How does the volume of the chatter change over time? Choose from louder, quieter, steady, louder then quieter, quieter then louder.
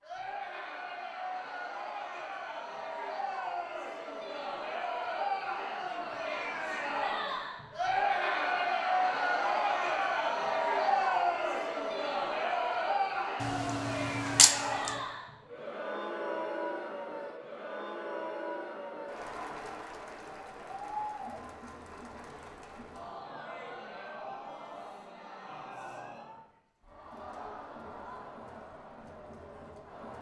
louder then quieter.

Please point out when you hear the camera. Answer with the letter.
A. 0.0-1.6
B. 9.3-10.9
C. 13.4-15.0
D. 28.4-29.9
C.